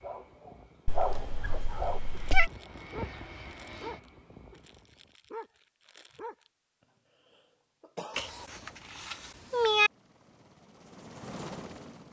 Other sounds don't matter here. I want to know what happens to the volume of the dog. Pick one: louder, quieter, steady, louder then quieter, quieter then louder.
quieter.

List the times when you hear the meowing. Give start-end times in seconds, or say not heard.
0.8-2.5, 8.2-9.9.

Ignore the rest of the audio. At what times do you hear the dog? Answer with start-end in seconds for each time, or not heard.
0.0-6.5.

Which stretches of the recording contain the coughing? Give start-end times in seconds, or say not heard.
7.2-8.5.